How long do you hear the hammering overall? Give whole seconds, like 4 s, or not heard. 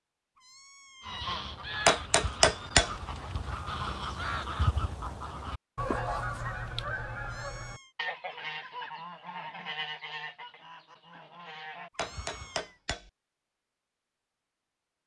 2 s.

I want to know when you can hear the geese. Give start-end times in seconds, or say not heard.
1.0-12.7.